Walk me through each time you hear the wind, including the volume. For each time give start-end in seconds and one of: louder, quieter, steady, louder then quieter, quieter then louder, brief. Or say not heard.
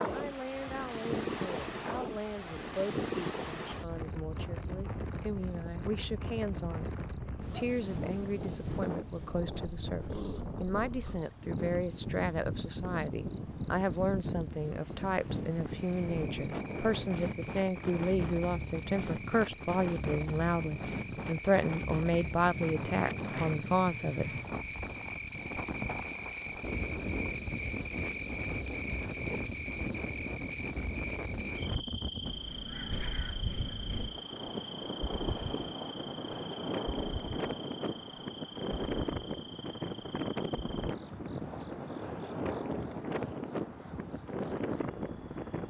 0.0-45.6 steady.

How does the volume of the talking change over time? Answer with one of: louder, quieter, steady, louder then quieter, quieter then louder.
louder.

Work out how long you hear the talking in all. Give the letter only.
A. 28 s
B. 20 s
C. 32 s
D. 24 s
D.